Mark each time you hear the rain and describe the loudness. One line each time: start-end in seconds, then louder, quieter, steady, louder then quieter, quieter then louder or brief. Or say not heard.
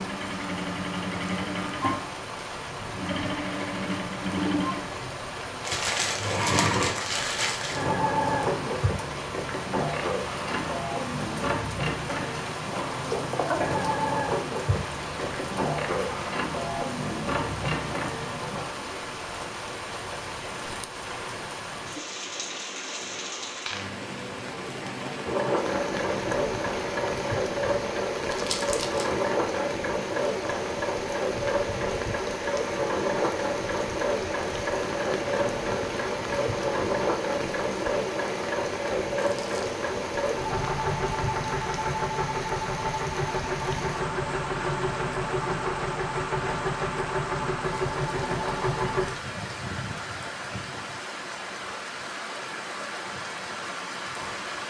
0.0-54.6 steady.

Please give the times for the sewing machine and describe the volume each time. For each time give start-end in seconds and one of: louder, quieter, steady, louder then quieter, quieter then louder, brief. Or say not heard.
0.0-18.6 steady
25.2-49.1 steady.